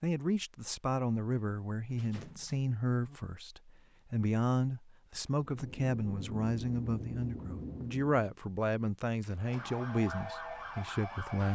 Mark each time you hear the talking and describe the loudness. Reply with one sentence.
You can hear the talking from 0.0 to 11.5 s, at a steady volume.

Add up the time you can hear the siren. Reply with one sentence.
The siren can be heard for 2 seconds in total.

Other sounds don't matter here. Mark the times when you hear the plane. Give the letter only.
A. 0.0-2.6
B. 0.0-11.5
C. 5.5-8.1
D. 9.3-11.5
C.